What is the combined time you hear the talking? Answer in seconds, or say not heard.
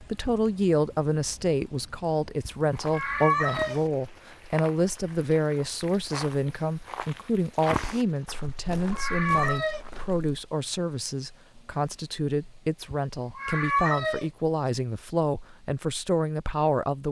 17 s.